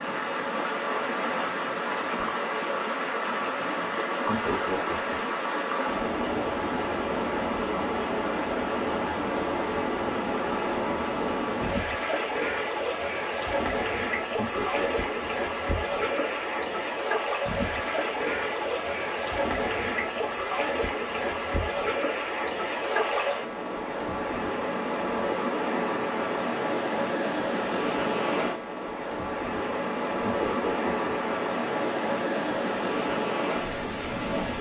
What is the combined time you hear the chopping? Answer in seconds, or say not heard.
not heard.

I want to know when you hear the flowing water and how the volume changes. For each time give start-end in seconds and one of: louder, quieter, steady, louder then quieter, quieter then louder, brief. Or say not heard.
0.0-34.5 steady.